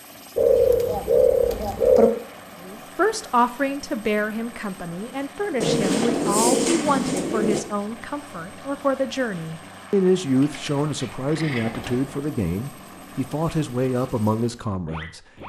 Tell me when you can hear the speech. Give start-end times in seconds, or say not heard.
2.6-15.2.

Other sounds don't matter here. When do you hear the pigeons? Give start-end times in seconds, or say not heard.
0.3-2.1, 5.6-7.6, 10.3-12.2.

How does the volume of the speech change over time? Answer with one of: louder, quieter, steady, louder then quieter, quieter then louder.
steady.